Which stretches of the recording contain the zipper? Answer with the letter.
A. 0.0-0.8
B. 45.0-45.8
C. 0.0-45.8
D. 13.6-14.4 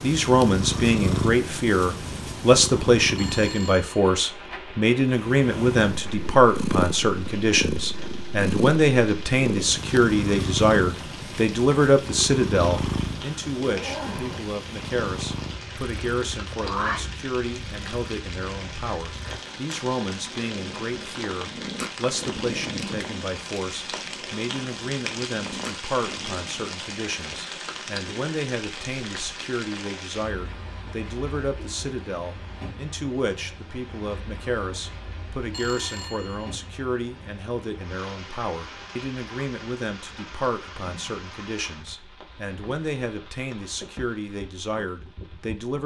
D.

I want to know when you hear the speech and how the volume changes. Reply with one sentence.
You can hear the speech from 0.0 to 45.8 s, getting quieter.